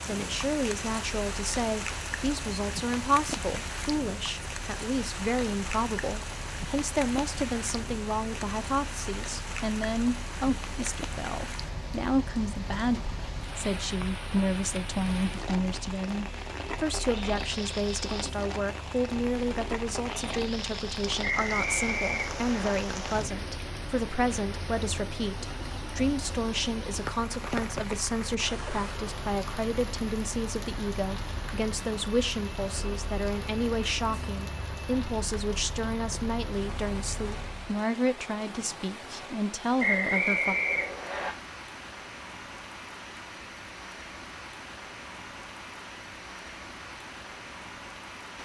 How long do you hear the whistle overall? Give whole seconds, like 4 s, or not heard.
3 s.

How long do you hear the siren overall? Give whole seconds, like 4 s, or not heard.
not heard.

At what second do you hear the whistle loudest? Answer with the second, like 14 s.
40 s.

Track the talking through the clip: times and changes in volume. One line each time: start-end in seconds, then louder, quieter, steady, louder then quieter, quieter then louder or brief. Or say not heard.
0.1-40.5 steady.